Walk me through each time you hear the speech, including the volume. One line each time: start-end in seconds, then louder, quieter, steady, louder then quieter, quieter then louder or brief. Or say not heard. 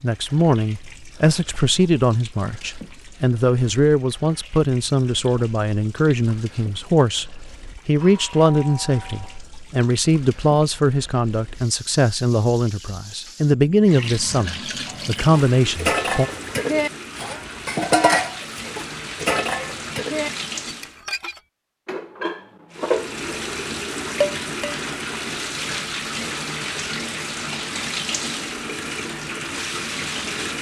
0.0-16.3 steady.